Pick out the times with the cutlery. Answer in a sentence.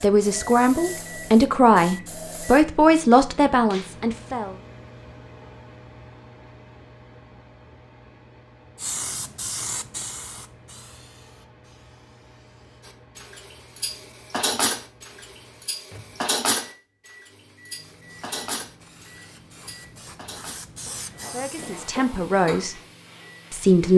The cutlery can be heard from 12.8 to 22.6 s.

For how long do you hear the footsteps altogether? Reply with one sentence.
You can't hear the footsteps here.